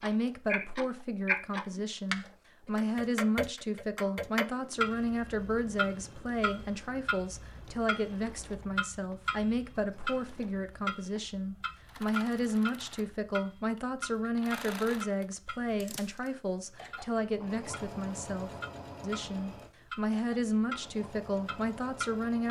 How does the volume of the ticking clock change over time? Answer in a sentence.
The volume of the ticking clock goes down.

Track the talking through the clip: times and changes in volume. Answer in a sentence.
You can hear the talking from 0.0 to 22.4 s, at a steady volume.